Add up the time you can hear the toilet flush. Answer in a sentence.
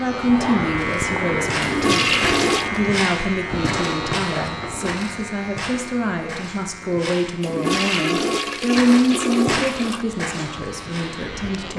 The toilet flush can be heard for 4 seconds in total.